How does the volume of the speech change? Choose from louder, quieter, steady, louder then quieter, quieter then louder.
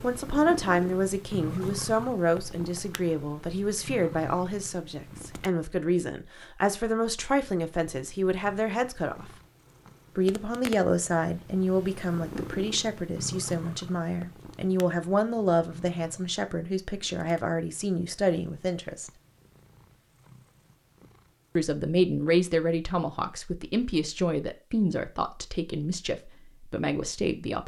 steady.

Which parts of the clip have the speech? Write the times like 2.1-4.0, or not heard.
0.0-9.3, 10.2-19.1, 21.6-27.6.